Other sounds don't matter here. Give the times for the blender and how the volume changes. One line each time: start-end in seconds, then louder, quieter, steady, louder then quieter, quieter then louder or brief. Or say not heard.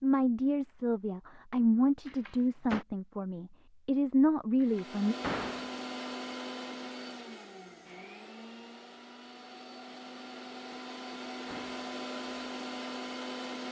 4.6-13.6 quieter then louder.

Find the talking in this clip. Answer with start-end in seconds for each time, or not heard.
0.0-5.2.